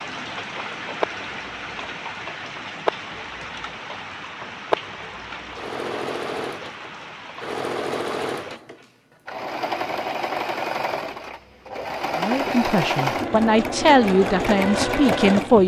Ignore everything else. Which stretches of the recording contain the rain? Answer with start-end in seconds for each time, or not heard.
0.0-8.6.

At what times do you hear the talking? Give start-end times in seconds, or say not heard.
12.2-15.6.